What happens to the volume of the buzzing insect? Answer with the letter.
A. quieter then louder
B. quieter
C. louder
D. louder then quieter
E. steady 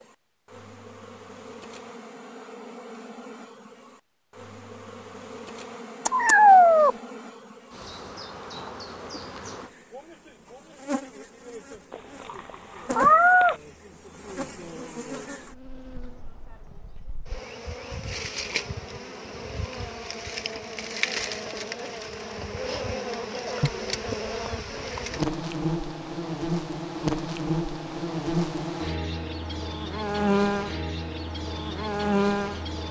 C.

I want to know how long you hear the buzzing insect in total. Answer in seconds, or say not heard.
33 s.